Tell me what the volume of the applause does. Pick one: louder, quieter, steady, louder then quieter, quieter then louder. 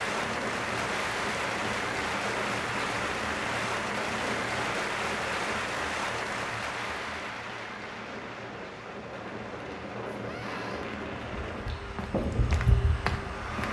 quieter.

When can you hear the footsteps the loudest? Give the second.
13 s.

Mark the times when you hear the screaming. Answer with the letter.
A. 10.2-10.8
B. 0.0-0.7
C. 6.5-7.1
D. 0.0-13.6
A.